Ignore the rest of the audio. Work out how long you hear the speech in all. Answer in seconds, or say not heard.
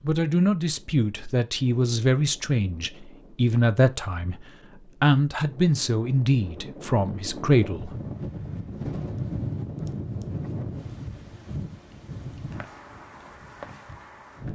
8 s.